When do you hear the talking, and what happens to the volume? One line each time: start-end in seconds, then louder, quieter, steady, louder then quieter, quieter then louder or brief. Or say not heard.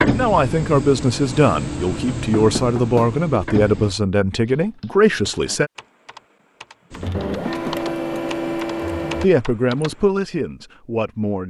0.0-5.7 steady
9.2-11.4 brief.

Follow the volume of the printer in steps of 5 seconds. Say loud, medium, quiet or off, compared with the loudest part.
loud, loud, off.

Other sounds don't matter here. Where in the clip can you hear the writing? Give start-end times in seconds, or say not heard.
not heard.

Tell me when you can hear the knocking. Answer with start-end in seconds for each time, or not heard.
2.4-3.1, 7.5-7.9.